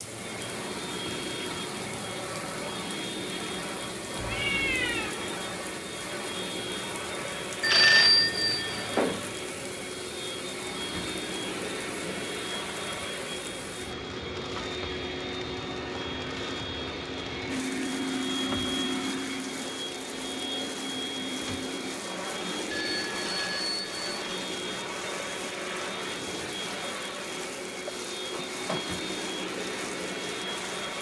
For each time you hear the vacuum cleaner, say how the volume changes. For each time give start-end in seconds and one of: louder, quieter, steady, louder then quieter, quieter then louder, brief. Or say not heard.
0.0-30.9 steady.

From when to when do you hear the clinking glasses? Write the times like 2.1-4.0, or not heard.
not heard.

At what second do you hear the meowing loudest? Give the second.
5 s.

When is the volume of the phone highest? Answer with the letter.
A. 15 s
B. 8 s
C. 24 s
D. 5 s
B.